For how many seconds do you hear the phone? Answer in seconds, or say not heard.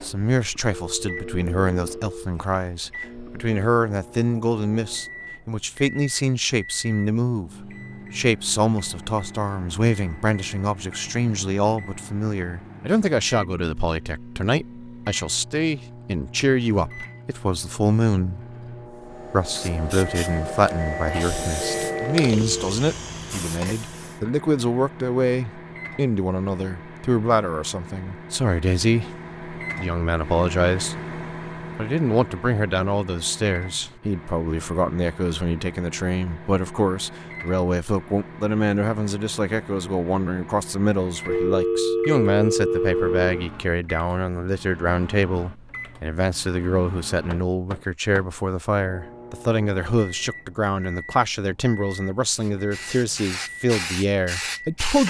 5 s.